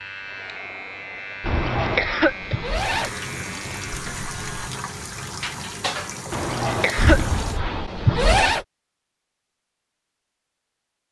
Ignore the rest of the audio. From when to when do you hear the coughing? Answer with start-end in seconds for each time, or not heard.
1.4-2.5, 6.3-7.3.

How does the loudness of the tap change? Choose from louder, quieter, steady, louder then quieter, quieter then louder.
steady.